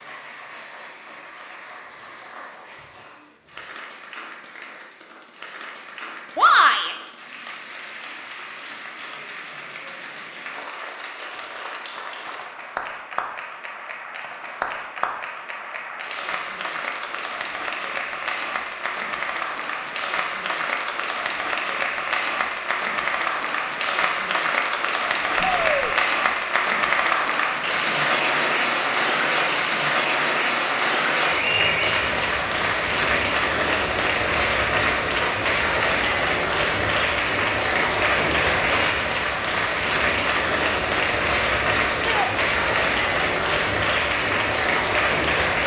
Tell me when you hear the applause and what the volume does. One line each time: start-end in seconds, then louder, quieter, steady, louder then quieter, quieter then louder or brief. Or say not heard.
0.0-45.6 louder.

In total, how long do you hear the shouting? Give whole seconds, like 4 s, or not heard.
2 s.